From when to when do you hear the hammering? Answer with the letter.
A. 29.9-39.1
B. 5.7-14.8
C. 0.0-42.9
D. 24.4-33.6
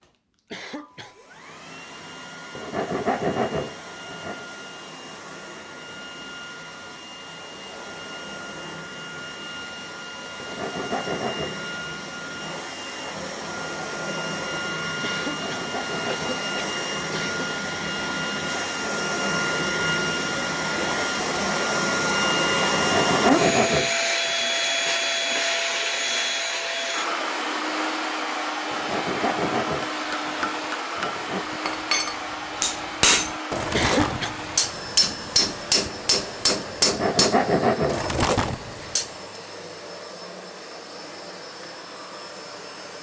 A.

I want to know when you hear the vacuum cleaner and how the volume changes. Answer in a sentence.
You can hear the vacuum cleaner from 0.0 to 42.9 s, getting louder then quieter.